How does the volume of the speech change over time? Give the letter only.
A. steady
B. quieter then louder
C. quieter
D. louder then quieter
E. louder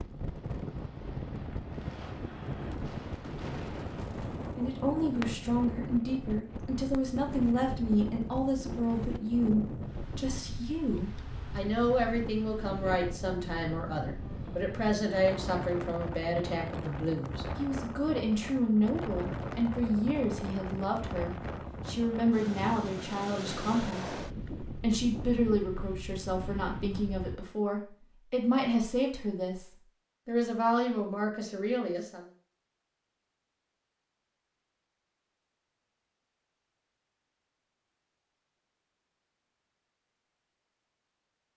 A.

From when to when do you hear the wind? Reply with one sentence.
You can hear the wind from 0.0 to 27.4 s.